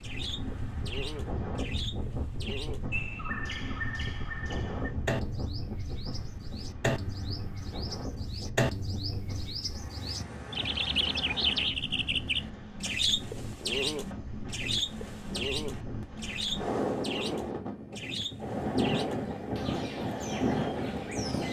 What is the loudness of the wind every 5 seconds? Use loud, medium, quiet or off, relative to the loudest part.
medium, medium, medium, loud, loud.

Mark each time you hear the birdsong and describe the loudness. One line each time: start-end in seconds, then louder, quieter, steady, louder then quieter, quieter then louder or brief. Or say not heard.
0.0-21.4 louder then quieter.